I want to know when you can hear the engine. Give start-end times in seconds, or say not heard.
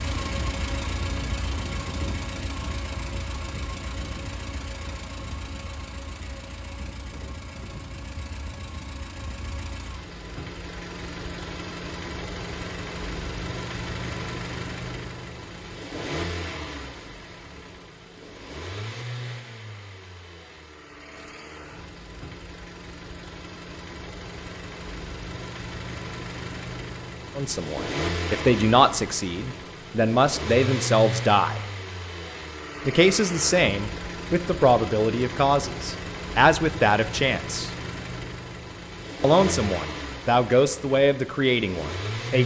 0.0-42.4.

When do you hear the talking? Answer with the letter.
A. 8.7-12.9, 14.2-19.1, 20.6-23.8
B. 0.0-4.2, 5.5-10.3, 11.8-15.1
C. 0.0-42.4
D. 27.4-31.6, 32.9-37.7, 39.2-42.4
D.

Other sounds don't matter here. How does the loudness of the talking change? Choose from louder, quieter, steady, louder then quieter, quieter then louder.
steady.